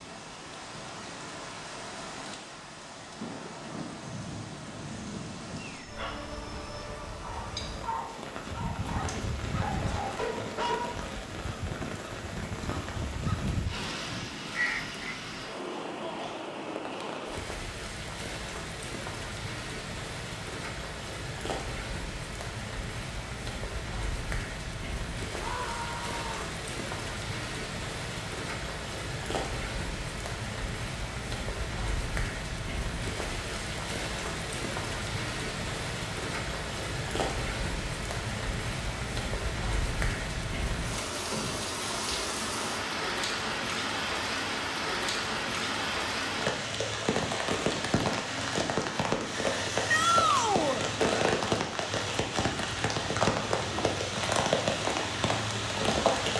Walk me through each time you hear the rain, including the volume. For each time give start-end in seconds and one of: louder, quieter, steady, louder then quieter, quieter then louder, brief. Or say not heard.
0.0-56.3 louder.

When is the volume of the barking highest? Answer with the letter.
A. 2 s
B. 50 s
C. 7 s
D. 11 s
D.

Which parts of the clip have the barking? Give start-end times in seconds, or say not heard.
5.8-11.1.